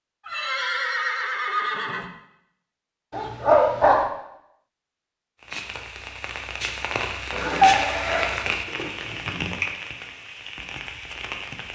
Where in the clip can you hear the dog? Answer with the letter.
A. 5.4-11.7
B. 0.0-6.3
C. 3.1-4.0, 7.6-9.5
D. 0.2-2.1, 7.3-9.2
C.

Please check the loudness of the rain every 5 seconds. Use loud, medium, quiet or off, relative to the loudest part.
off, loud, medium.